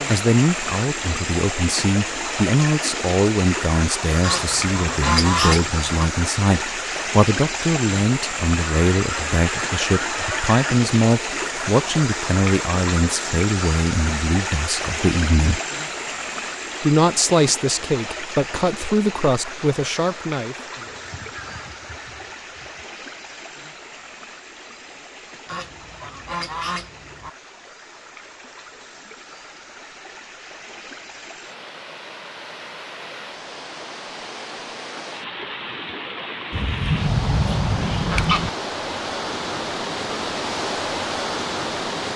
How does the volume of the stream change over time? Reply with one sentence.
The loudness of the stream goes down, then up.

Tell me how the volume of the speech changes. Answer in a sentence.
The volume of the speech stays about the same.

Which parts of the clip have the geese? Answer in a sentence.
You can hear the geese from 4.2 to 5.9 s, from 8.6 to 10.7 s, from 20.9 to 22.9 s, from 25.4 to 27.3 s and from 36.5 to 38.5 s.